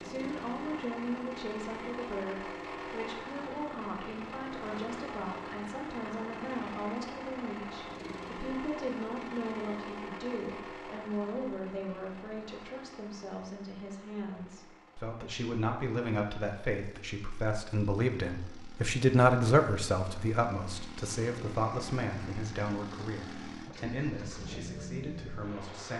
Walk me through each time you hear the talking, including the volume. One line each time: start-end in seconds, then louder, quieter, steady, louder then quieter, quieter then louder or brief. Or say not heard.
0.0-25.9 louder then quieter.